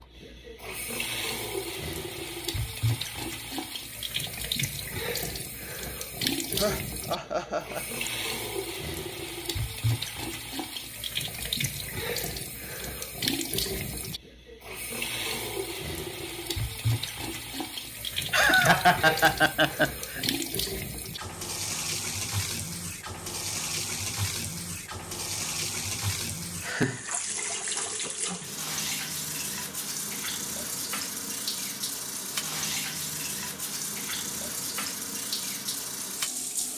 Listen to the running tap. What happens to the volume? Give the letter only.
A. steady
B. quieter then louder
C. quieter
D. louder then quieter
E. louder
A.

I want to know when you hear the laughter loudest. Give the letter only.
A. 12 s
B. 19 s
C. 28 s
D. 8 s
B.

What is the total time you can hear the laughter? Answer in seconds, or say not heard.
4 s.